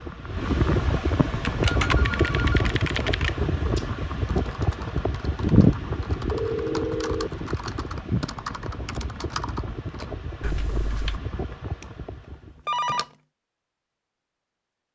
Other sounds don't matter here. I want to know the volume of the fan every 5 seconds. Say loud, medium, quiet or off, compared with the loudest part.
loud, medium, medium.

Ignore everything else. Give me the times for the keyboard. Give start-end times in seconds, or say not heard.
1.4-11.2.